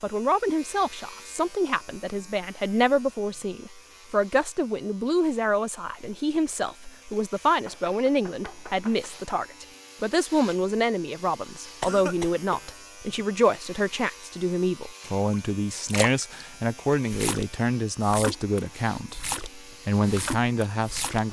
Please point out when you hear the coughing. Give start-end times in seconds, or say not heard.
11.8-12.7.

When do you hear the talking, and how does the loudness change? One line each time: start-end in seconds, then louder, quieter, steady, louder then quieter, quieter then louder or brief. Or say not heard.
0.0-21.2 steady.